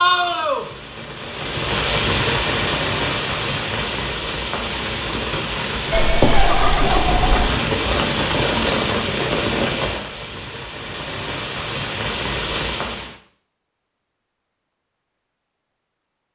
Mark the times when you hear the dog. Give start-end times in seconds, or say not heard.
not heard.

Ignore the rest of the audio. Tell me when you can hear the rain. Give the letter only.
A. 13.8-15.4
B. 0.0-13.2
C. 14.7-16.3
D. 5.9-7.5
B.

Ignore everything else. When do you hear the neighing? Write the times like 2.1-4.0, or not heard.
5.9-7.5.